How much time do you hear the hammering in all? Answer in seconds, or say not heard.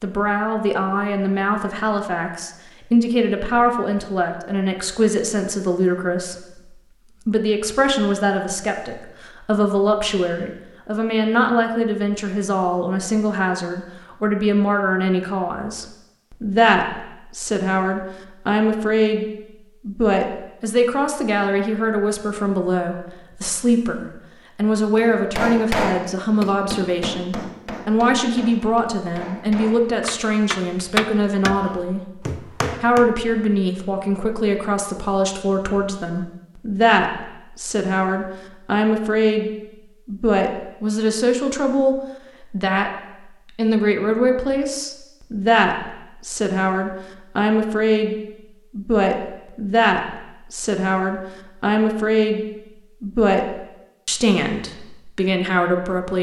8 s.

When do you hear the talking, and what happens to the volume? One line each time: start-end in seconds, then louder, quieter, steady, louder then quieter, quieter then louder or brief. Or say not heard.
0.0-56.1 steady.